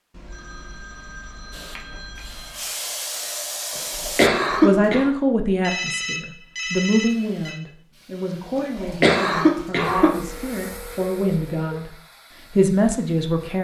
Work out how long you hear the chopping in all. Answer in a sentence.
You can't hear the chopping here.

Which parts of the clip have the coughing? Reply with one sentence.
The coughing can be heard from 4.0 to 5.1 s and from 8.6 to 10.4 s.